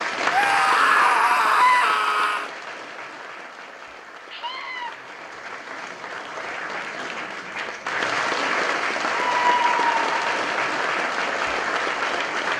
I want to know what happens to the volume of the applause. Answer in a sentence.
The volume of the applause goes down, then up.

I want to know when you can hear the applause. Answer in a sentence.
You can hear the applause from 0.0 to 12.5 s.